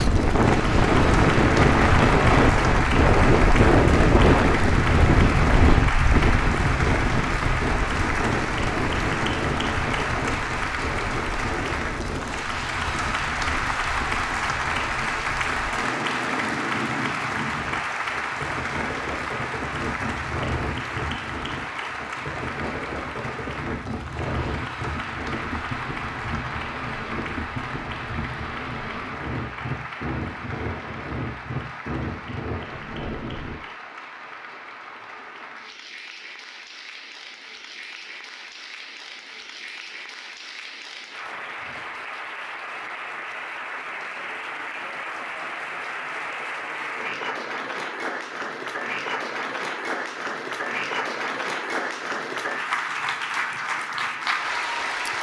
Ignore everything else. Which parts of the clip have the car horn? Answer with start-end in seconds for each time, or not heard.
not heard.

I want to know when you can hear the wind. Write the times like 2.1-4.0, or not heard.
0.0-33.6.